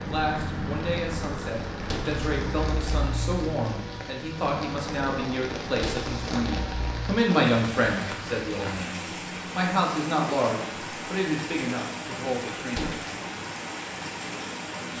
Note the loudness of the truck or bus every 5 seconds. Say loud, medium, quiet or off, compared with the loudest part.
loud, loud, off.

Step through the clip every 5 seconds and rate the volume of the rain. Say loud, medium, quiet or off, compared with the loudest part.
medium, loud, loud.